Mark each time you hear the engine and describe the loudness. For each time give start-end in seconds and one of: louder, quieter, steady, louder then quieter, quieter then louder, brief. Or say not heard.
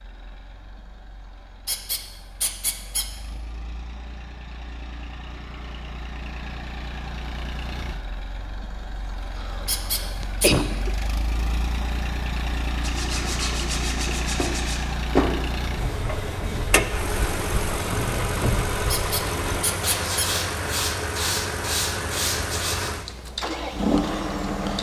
0.0-24.7 louder.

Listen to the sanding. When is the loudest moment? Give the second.
15 s.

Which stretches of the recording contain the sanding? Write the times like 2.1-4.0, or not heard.
12.8-22.9.